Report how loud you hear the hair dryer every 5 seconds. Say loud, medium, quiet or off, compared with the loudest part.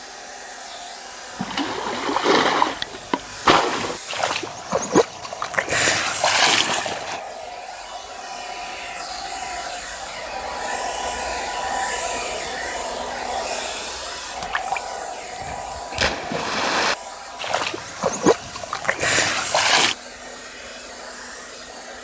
medium, medium, loud, medium, medium.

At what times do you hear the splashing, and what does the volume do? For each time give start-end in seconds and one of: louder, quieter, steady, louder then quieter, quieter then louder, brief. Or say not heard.
1.4-7.2 quieter then louder
14.4-19.9 louder.